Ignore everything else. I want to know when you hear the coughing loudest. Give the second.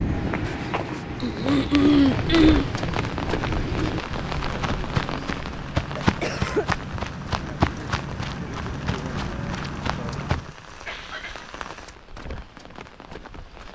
2 s.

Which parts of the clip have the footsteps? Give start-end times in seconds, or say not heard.
0.0-10.5.